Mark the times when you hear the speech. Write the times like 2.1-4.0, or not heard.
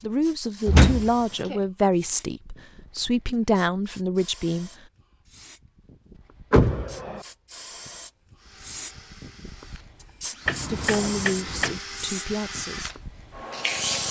0.0-4.7, 10.7-12.9.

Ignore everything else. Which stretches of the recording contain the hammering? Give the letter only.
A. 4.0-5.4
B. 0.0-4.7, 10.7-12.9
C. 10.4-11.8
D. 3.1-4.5
C.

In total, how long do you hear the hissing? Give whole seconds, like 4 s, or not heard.
14 s.